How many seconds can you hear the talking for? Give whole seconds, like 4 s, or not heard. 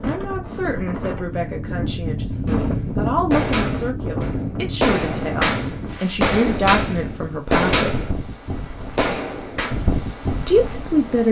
9 s.